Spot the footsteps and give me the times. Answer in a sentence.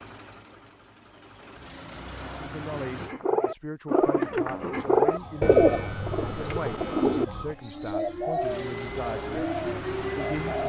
You can't hear the footsteps here.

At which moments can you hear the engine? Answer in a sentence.
You can hear the engine from 0.0 to 3.1 s and from 8.3 to 10.6 s.